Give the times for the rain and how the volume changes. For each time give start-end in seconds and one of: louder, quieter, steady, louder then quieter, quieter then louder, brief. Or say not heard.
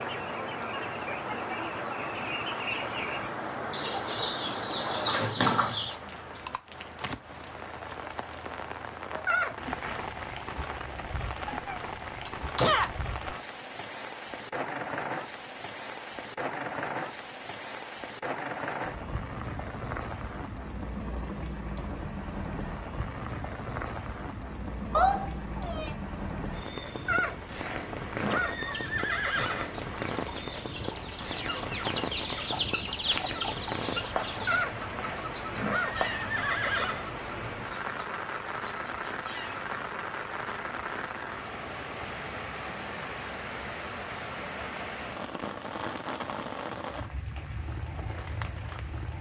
0.0-49.1 steady.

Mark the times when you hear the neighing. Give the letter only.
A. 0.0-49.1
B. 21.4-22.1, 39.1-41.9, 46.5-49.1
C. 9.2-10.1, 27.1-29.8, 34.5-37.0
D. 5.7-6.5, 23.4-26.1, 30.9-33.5
C.